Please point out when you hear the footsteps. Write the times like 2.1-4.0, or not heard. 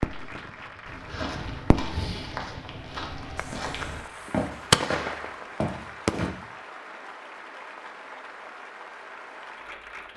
0.8-6.3.